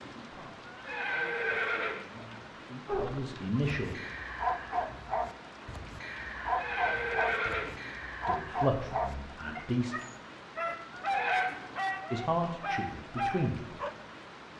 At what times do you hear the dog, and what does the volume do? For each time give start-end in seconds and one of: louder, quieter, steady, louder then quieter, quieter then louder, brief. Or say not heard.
2.9-13.9 steady.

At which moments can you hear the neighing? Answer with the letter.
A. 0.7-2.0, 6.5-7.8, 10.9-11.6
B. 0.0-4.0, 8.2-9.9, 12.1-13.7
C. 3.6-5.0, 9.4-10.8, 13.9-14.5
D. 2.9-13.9
A.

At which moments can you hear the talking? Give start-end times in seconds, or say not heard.
0.0-4.0, 8.2-9.9, 12.1-13.7.